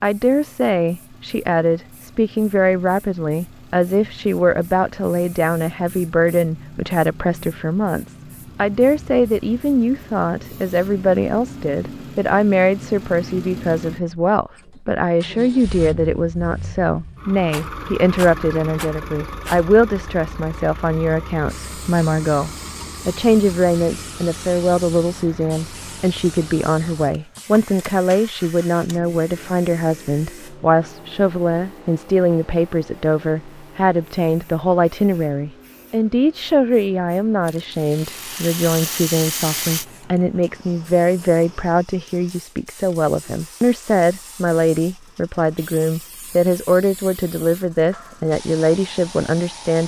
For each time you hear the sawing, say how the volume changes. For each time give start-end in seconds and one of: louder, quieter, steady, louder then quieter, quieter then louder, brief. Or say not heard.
not heard.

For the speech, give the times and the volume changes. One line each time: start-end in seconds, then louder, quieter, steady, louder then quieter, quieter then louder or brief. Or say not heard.
0.0-49.8 steady.